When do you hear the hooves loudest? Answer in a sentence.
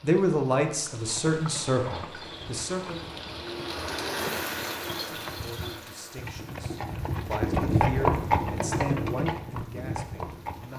The volume of the hooves peaks at 8 seconds.